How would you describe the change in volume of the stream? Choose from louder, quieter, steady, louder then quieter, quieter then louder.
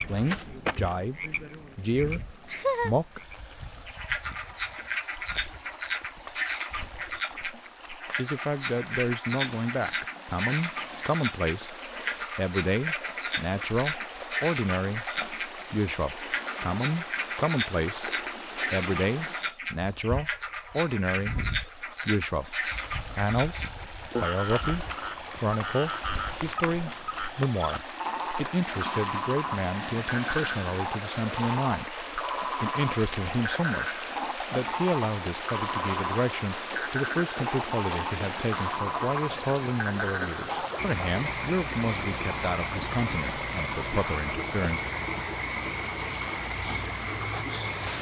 louder.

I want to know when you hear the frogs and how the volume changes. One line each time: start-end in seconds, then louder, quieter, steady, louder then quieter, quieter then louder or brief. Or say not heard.
0.0-47.9 steady.